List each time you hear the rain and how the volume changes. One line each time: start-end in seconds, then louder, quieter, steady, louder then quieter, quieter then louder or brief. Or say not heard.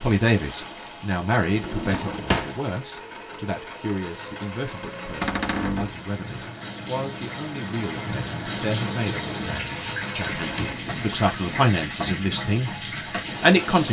0.0-13.8 louder.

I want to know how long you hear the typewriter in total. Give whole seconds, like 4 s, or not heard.
not heard.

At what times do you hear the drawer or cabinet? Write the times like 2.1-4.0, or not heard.
1.6-2.5, 5.2-6.0, 10.3-11.7.